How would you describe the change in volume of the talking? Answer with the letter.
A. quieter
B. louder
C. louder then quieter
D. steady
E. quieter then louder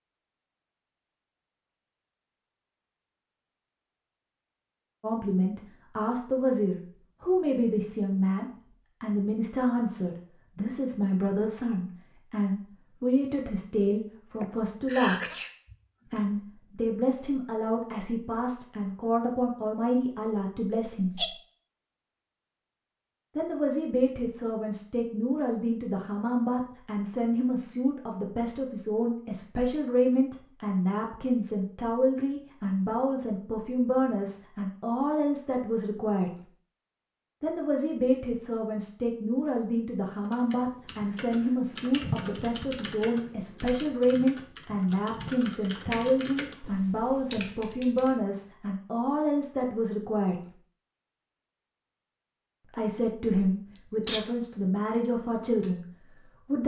D.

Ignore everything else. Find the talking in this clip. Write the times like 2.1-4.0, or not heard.
5.0-15.3, 16.1-21.1, 23.4-36.4, 37.4-50.5, 52.6-56.6.